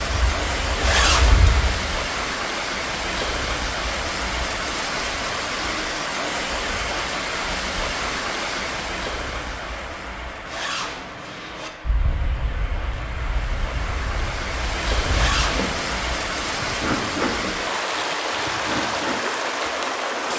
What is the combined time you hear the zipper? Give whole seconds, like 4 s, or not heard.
3 s.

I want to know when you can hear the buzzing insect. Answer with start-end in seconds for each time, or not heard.
0.0-1.9, 11.8-20.3.